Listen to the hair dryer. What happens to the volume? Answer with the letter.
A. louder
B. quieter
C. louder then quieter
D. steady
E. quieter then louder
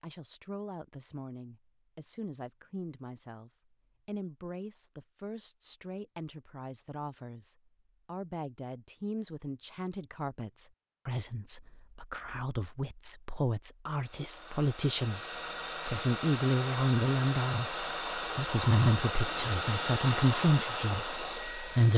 A.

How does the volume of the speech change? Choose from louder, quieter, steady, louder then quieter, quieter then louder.
louder.